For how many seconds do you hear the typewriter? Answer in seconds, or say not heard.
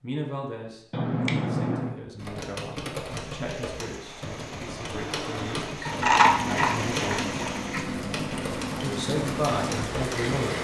8 s.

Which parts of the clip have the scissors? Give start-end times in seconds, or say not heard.
0.9-1.9, 5.8-7.8.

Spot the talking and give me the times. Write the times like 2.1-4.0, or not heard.
0.0-7.3, 8.8-10.5.